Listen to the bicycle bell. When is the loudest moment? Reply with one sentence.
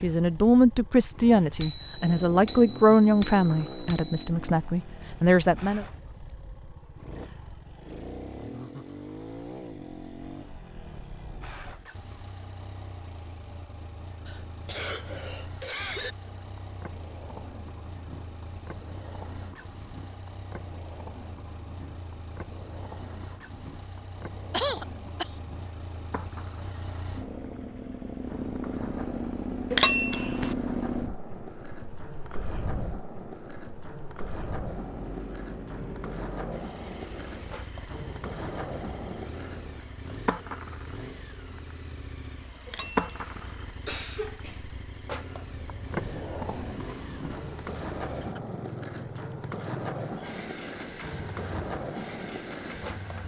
The volume of the bicycle bell peaks at 30 seconds.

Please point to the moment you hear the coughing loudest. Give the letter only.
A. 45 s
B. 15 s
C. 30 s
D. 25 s
D.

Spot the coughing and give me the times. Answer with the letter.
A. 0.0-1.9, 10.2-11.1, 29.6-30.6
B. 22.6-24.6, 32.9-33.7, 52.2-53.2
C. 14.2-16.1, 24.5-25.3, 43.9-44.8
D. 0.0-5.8
C.